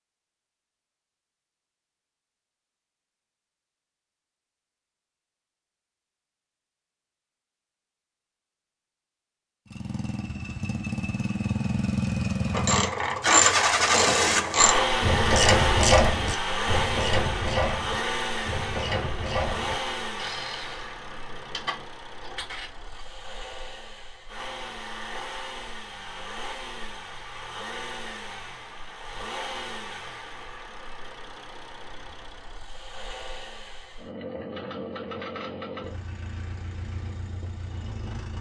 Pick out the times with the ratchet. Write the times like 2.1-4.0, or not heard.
12.5-23.0.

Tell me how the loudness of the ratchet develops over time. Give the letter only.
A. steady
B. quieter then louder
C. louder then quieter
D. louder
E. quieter
E.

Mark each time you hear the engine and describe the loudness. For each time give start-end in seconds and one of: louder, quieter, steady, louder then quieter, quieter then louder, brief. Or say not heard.
9.7-38.3 quieter.